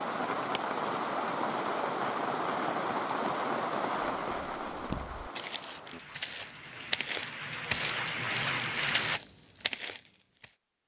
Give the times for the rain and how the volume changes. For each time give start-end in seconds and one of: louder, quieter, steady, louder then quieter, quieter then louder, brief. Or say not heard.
0.0-9.2 quieter then louder.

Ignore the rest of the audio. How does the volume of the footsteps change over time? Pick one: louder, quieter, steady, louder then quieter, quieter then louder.
louder.